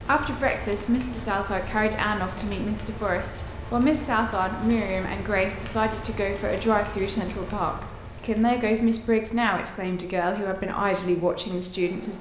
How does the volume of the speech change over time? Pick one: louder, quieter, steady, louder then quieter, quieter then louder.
steady.